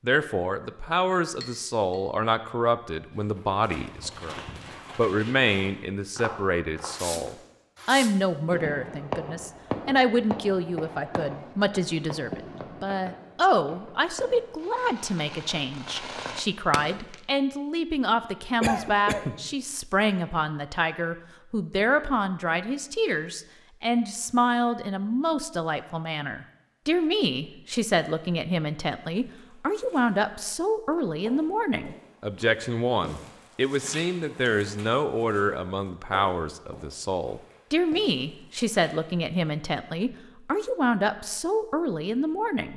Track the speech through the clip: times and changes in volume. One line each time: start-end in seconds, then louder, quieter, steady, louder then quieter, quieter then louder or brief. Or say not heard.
0.0-4.3 steady
5.0-42.7 steady.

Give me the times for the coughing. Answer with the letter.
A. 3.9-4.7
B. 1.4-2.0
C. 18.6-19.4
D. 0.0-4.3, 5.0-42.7
C.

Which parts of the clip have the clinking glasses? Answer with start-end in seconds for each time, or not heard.
1.4-2.0.